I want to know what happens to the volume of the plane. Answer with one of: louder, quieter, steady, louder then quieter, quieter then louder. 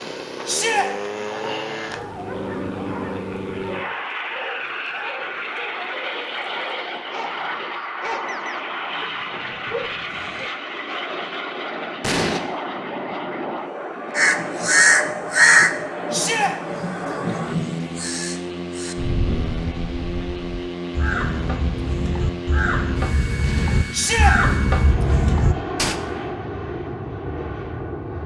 steady.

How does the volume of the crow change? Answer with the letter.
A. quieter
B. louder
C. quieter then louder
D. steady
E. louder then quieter
C.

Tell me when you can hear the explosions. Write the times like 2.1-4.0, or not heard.
12.0-12.4, 23.4-23.8.